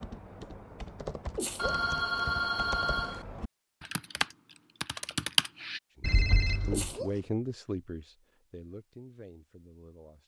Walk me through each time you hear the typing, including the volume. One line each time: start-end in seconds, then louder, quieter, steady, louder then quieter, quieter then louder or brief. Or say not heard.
0.0-5.8 louder.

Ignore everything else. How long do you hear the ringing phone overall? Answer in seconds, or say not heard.
3 s.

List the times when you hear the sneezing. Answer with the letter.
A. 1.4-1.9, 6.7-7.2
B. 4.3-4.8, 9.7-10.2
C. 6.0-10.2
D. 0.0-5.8
A.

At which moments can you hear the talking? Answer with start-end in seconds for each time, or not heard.
6.0-10.2.